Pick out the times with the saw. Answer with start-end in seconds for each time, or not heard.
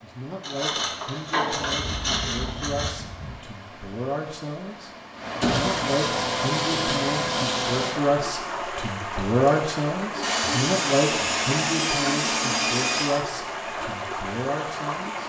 0.4-3.0, 5.4-8.0, 10.2-13.2.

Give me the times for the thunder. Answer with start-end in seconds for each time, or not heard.
1.6-3.4.